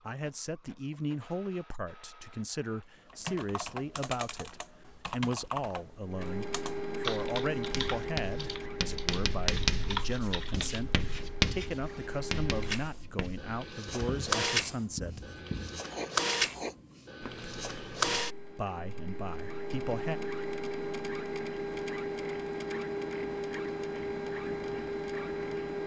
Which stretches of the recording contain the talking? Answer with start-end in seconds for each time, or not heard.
0.0-15.3, 18.5-20.2.